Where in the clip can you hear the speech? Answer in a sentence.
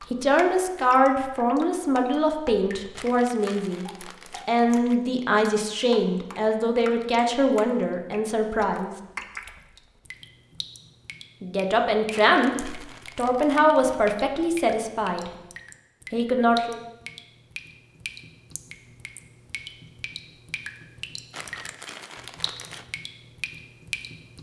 The speech can be heard from 0.1 to 3.9 s, from 4.5 to 8.9 s, from 11.4 to 15.3 s and from 16.1 to 16.8 s.